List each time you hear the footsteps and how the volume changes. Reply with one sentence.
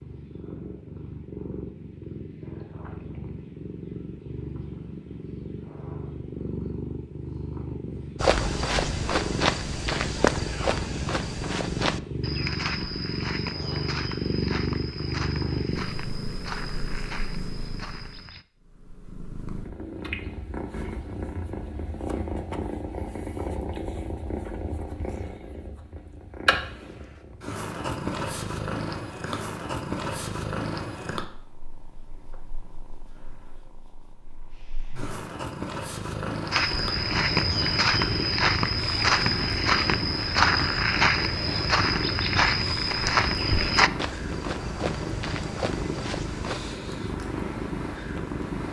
The footsteps can be heard from 8.2 to 18.4 s, getting quieter; and from 36.5 to 46.8 s, getting quieter.